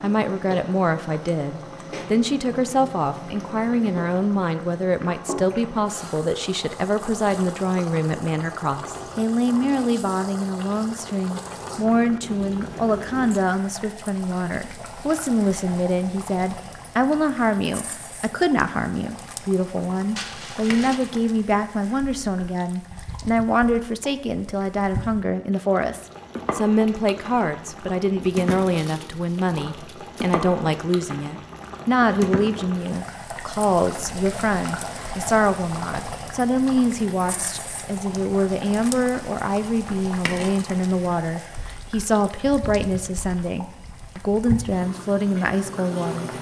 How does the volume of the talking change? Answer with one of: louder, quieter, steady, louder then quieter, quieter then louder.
steady.